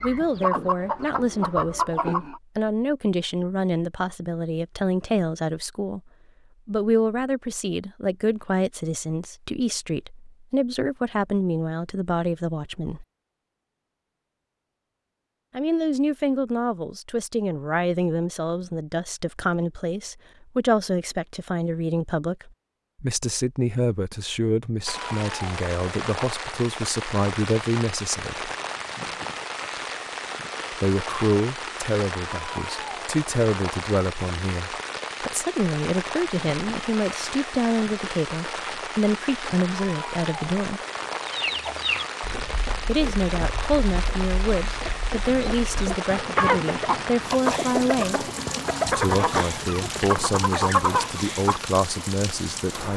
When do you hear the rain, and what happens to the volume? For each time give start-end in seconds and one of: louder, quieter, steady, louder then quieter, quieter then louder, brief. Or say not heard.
24.9-52.9 steady.